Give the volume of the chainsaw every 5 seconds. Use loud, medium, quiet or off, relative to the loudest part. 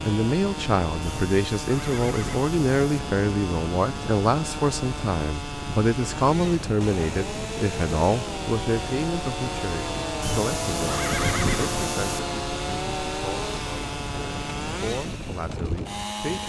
medium, loud, loud, medium.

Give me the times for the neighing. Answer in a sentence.
You can hear the neighing from 1.0 to 3.0 s and from 10.2 to 12.2 s.